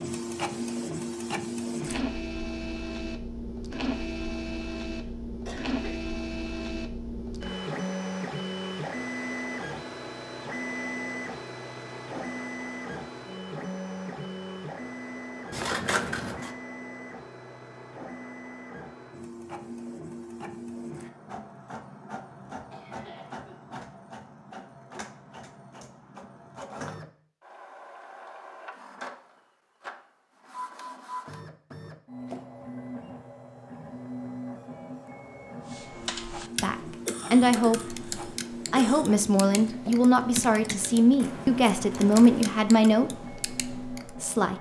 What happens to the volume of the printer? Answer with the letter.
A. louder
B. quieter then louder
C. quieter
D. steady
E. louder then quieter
C.